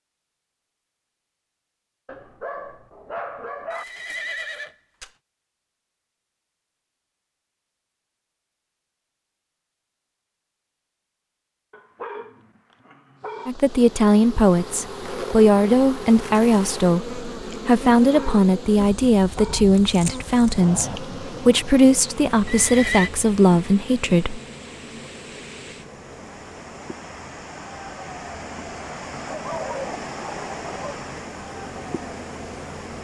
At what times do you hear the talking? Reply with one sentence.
You can hear the talking from 13.4 to 24.4 s.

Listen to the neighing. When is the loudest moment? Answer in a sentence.
The loudest moment of the neighing is at 23 seconds.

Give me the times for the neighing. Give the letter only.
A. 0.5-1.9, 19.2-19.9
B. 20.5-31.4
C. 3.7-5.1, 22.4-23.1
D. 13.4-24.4
C.